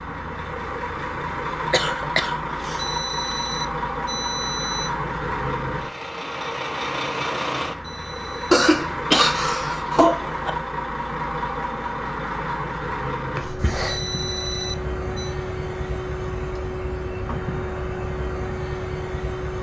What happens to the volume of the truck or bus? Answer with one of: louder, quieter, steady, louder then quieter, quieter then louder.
steady.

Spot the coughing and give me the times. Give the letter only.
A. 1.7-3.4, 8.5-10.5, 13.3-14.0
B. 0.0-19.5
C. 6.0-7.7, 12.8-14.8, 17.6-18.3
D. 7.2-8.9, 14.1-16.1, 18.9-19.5
A.